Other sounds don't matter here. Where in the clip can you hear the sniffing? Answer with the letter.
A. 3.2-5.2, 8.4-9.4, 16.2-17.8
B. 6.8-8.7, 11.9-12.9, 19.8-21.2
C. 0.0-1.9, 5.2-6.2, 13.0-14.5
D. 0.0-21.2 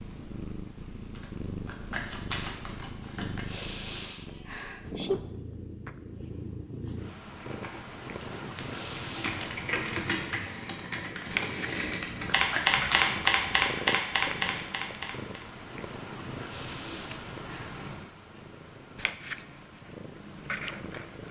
A.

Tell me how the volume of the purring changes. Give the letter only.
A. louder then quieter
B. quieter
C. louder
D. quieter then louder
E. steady
E.